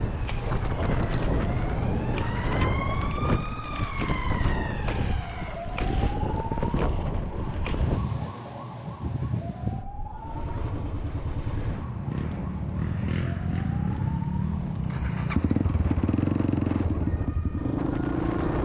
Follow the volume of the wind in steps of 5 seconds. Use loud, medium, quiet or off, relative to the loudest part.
loud, loud, quiet, medium.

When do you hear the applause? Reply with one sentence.
You can't hear the applause here.